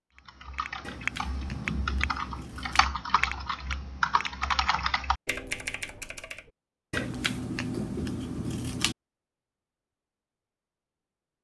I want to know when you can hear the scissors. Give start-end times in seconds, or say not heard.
0.8-2.9, 6.9-8.9.